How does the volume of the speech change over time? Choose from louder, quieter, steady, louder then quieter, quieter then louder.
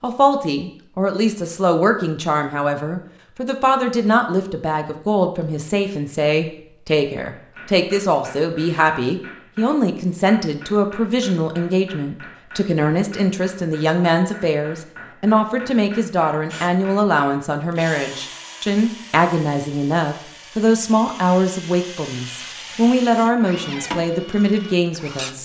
steady.